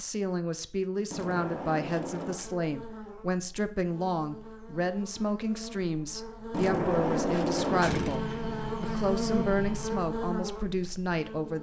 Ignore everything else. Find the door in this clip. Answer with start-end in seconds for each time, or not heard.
1.1-2.5, 6.5-8.2.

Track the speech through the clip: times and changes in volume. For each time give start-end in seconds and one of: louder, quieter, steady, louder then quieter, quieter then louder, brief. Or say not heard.
0.0-11.5 steady.